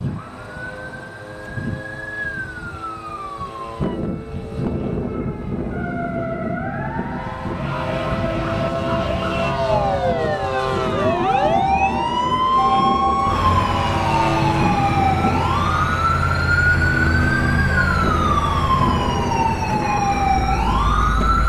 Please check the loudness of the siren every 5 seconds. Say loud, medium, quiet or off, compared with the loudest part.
quiet, medium, loud, loud, loud.